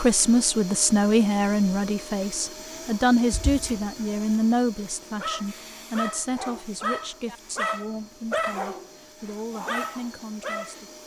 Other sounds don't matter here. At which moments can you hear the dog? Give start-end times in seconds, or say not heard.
5.2-10.8.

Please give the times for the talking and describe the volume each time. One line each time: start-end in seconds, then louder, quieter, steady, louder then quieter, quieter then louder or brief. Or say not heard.
0.0-11.0 quieter.